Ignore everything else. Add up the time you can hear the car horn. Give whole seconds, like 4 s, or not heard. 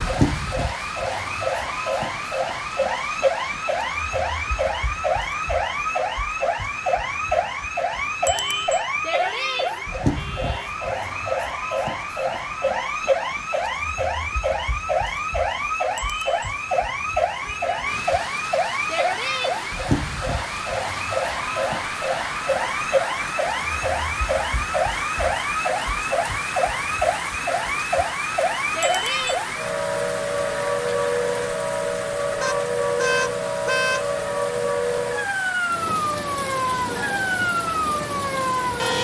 5 s.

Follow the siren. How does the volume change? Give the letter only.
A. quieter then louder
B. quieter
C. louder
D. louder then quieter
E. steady
E.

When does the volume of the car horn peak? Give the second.
34 s.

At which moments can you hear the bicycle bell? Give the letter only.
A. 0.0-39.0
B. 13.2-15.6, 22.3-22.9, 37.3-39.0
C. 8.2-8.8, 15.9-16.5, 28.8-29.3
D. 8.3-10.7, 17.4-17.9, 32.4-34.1
C.